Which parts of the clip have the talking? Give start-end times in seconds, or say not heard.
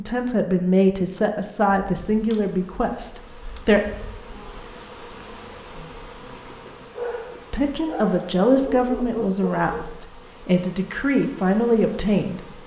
0.0-3.8, 7.5-12.6.